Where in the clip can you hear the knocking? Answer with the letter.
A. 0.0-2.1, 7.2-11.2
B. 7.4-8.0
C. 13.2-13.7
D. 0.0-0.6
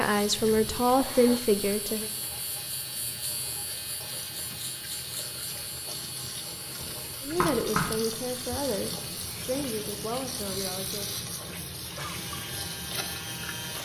B.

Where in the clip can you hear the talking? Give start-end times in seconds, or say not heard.
0.0-2.1, 7.2-11.2.